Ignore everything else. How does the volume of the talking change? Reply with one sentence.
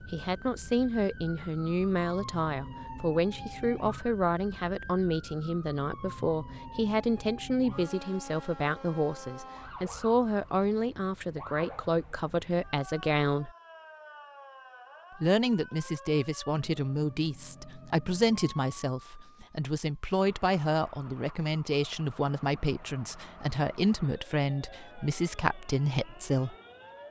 The volume of the talking stays about the same.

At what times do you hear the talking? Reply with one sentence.
The talking can be heard from 0.0 to 13.5 s and from 15.2 to 26.6 s.